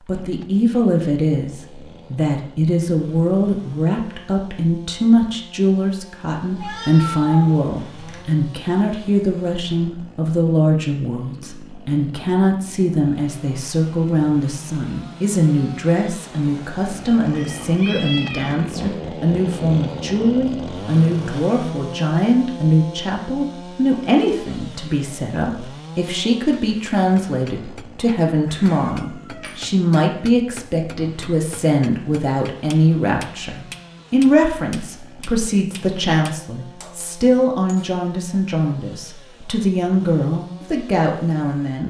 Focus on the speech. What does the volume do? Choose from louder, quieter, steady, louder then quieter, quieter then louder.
steady.